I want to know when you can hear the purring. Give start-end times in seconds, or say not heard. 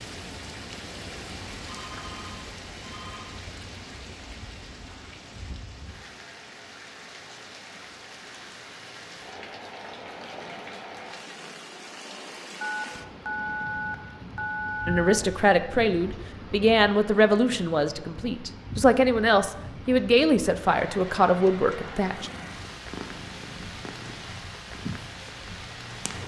22.1-26.2.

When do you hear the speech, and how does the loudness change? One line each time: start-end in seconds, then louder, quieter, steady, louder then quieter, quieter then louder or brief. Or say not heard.
14.8-22.3 steady.